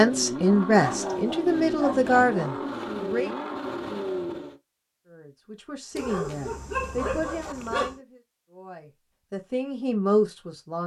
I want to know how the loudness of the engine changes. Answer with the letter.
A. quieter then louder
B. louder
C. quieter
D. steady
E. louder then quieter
D.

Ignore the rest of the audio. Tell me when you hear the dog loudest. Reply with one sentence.
The volume of the dog peaks at 7 seconds.